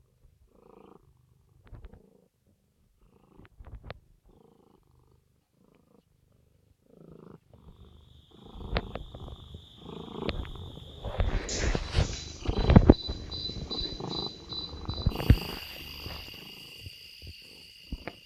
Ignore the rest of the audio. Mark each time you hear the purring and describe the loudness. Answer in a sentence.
You can hear the purring from 0.0 to 18.2 s, getting louder then quieter.